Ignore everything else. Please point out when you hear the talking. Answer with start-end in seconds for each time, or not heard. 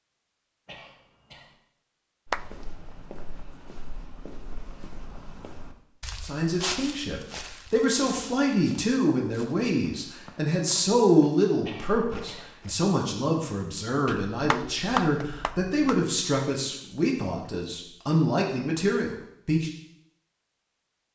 6.2-19.7.